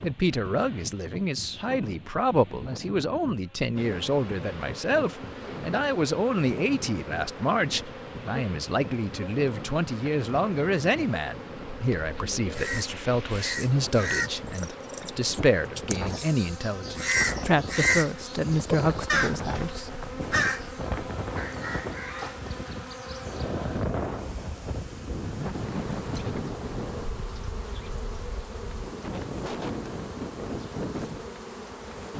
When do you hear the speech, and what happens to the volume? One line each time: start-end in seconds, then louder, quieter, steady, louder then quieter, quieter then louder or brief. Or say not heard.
0.0-20.0 steady.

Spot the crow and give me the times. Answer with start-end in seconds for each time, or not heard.
12.5-22.4.